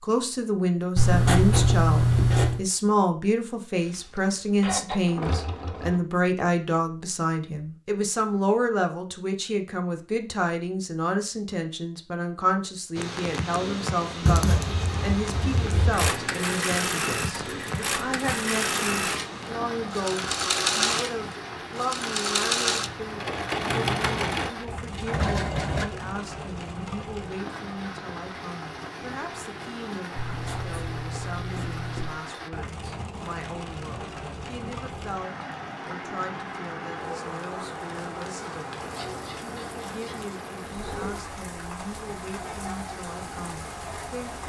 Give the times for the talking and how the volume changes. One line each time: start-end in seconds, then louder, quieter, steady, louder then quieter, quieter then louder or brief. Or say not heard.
0.0-44.4 quieter.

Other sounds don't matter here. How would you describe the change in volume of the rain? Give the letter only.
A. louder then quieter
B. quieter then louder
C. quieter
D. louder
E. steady
E.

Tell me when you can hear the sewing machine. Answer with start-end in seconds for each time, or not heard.
3.8-6.0, 15.9-25.9.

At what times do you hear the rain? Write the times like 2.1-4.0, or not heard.
12.9-44.4.